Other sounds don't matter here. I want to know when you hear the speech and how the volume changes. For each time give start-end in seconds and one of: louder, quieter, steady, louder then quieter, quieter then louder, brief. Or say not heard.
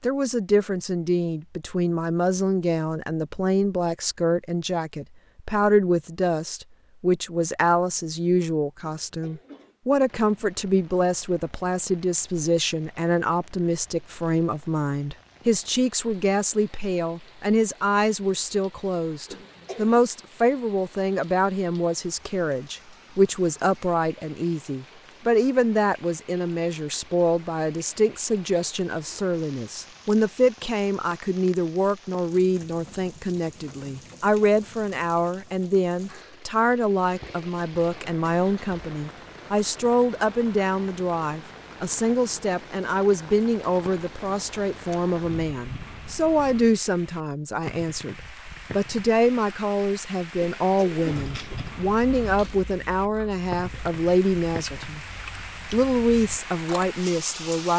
0.0-55.0 steady
55.7-57.7 brief.